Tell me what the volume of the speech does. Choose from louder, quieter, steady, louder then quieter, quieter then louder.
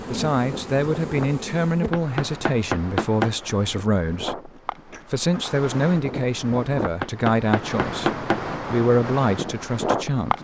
steady.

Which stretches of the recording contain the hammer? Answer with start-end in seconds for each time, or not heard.
1.9-3.3, 7.0-8.4.